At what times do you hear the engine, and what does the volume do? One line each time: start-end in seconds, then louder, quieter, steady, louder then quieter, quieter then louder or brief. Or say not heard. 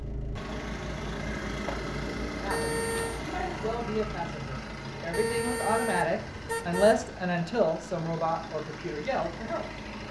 0.0-10.0 quieter.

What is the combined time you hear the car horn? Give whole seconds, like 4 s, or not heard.
3 s.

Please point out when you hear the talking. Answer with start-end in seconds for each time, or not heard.
2.4-9.7.